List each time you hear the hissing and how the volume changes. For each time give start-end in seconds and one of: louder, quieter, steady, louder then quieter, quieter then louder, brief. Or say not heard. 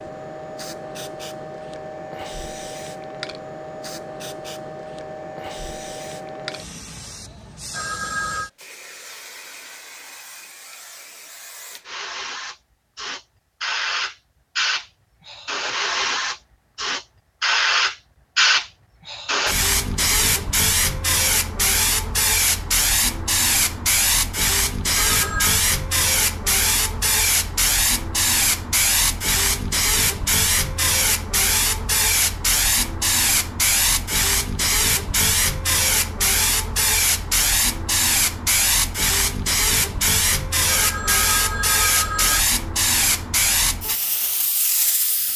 0.0-45.3 louder.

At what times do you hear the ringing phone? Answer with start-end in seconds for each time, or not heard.
7.7-8.5, 24.9-25.6, 40.6-42.4.